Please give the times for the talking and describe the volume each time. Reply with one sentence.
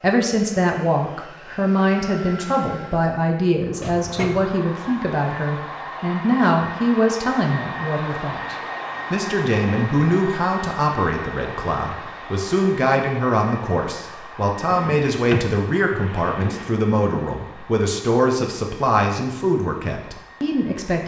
You can hear the talking from 0.0 to 21.0 s, at a steady volume.